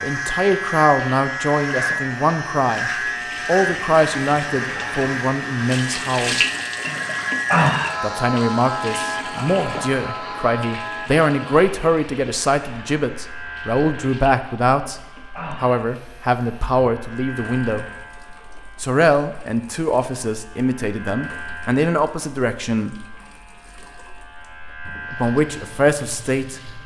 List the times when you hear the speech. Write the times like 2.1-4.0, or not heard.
0.0-6.4, 8.0-15.0, 15.6-17.9, 18.8-22.9, 25.1-26.8.